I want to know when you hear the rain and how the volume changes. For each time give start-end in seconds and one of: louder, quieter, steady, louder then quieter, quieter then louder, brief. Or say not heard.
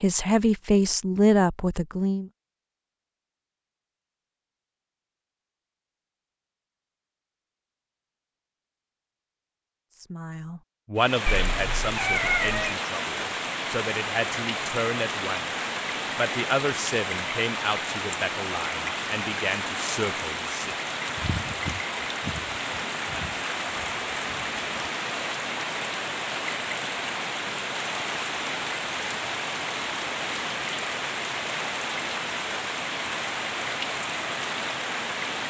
10.9-35.4 steady.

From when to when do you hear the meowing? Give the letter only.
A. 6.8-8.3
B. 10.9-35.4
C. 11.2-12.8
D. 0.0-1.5
C.